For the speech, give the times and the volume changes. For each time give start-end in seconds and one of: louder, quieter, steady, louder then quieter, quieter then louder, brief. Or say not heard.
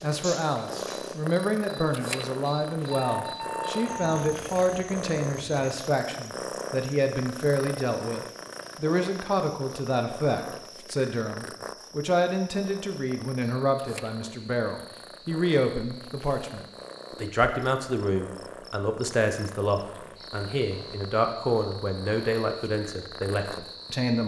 0.0-24.2 steady.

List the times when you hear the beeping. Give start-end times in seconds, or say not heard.
2.9-4.2.